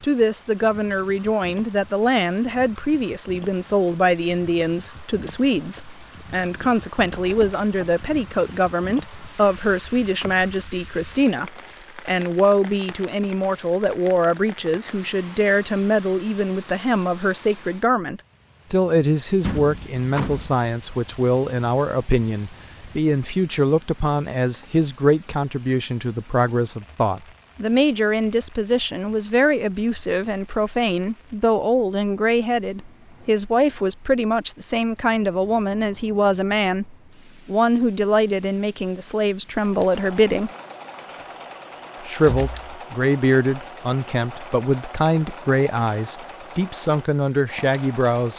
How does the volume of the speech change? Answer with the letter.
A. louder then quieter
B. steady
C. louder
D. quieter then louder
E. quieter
B.